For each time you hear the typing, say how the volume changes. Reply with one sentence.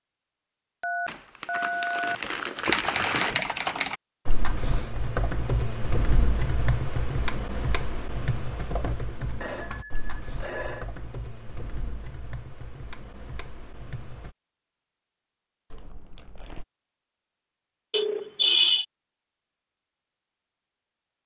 You can hear the typing from 2.6 to 14.3 s, getting quieter.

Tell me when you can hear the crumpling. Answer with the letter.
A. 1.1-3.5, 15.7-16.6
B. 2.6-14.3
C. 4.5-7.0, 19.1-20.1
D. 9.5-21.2
A.